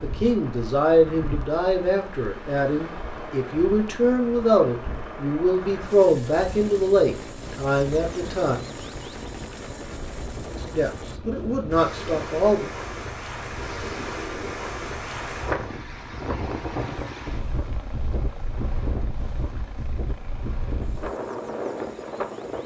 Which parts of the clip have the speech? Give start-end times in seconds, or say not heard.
0.0-8.6, 10.7-12.7.